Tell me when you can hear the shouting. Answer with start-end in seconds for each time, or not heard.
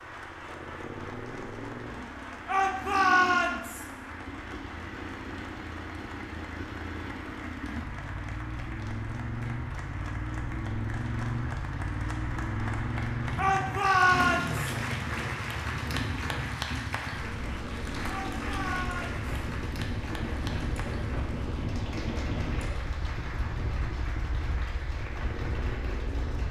2.5-3.9, 13.3-14.7, 18.1-19.2.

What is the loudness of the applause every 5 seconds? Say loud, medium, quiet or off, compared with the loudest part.
medium, medium, loud, loud, medium, medium.